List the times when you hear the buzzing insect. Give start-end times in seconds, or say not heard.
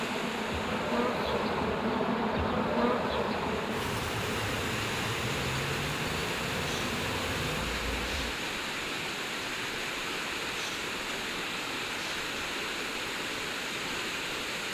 0.0-8.3.